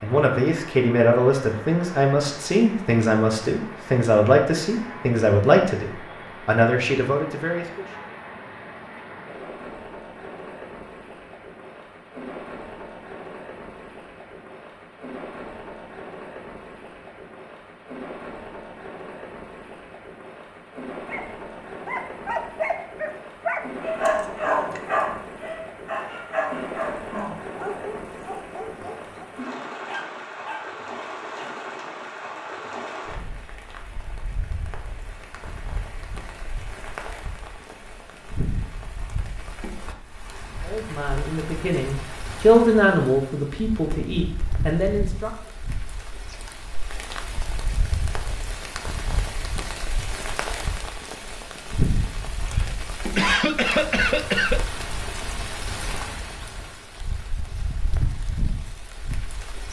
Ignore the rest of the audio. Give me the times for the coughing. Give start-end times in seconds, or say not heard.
52.5-54.6.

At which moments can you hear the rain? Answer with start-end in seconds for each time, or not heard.
0.0-59.6.